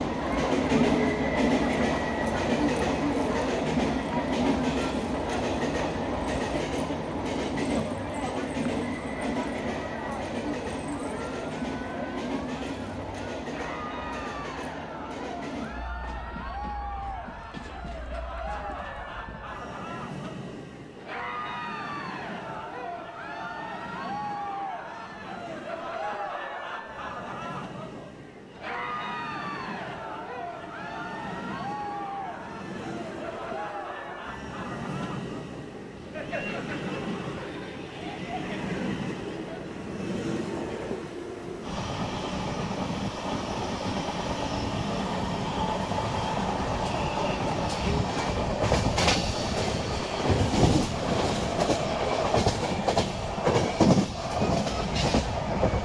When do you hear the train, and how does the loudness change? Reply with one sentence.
The train can be heard from 0.0 to 55.8 s, getting quieter then louder.